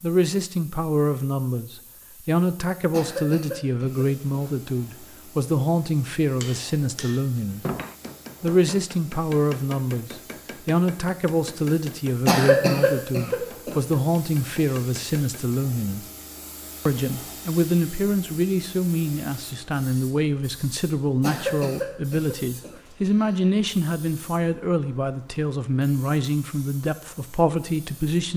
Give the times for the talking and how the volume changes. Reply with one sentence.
You can hear the talking from 0.0 to 7.7 s, at a steady volume; from 8.4 to 16.1 s, at a steady volume; and from 16.9 to 28.3 s, at a steady volume.